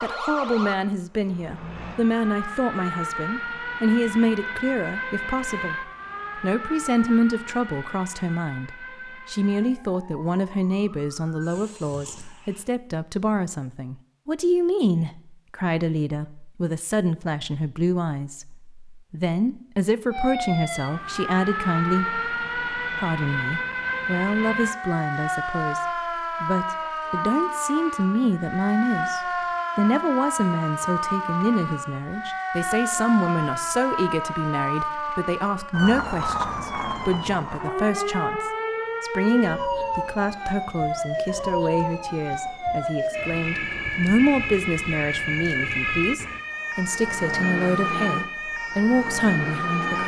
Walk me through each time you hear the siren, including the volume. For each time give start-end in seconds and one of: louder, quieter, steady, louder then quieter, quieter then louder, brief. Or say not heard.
0.0-12.7 quieter
20.1-50.0 steady.